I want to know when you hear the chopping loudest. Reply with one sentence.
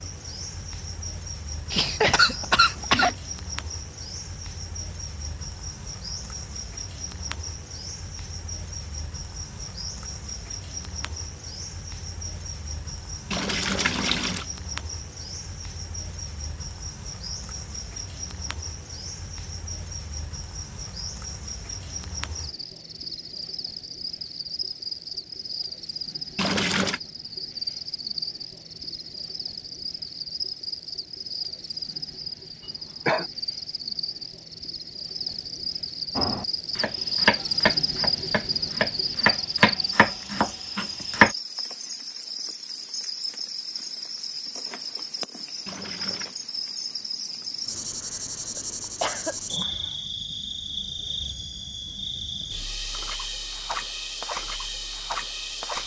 The volume of the chopping peaks at 41 seconds.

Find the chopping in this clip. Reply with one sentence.
You can hear the chopping from 36.1 to 41.3 s.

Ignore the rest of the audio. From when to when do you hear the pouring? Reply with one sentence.
The pouring can be heard from 13.3 to 14.4 s, from 26.4 to 27.0 s and from 45.6 to 46.4 s.